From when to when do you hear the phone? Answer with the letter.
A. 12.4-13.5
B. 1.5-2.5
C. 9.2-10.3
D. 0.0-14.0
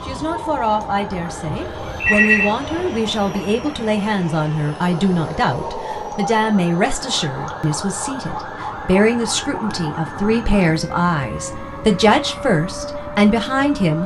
B.